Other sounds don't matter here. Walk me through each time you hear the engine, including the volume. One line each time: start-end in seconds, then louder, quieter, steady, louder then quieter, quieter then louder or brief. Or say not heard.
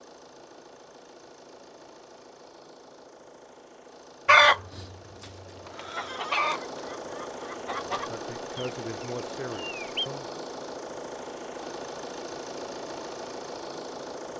0.0-14.3 louder.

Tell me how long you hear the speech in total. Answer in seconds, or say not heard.
2 s.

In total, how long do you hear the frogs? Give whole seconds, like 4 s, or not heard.
not heard.